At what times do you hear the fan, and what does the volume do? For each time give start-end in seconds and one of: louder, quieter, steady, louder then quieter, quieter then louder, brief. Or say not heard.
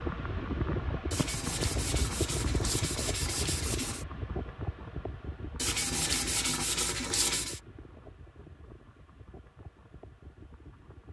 0.0-11.0 quieter.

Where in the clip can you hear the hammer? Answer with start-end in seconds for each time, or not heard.
not heard.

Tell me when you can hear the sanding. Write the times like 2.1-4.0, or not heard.
1.1-4.0, 5.5-7.6.